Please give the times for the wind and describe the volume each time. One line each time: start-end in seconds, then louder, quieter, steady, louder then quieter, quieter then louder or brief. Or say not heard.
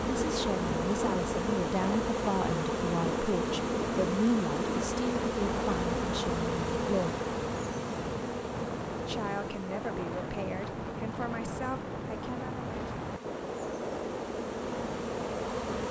0.0-15.8 steady.